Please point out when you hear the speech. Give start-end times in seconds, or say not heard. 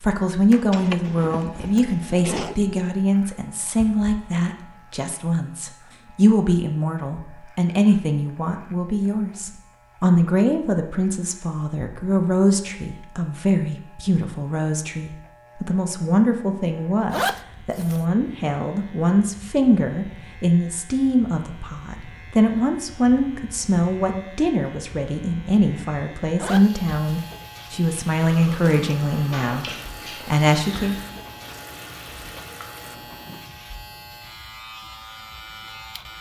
0.0-30.9.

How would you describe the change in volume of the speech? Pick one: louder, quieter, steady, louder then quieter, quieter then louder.
steady.